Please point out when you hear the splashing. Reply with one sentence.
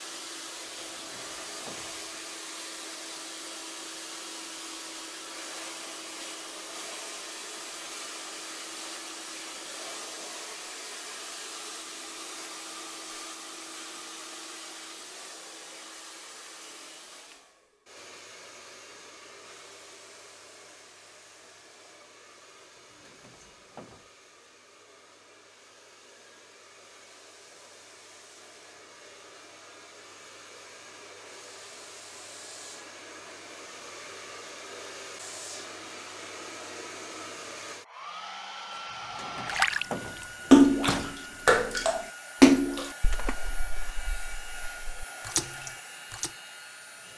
The splashing can be heard from 39.4 to 46.3 s.